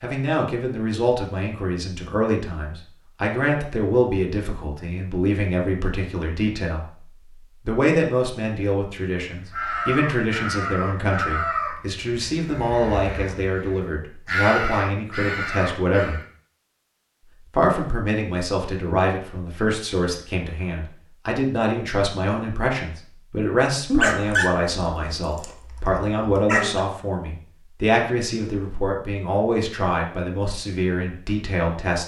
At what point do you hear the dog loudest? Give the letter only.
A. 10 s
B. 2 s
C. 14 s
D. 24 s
D.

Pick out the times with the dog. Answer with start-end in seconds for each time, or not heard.
23.9-26.8.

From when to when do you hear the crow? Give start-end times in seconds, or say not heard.
9.5-16.2.